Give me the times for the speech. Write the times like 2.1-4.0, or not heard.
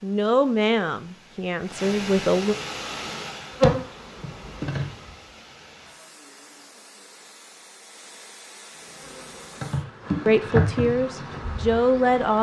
0.0-2.5, 10.2-12.3.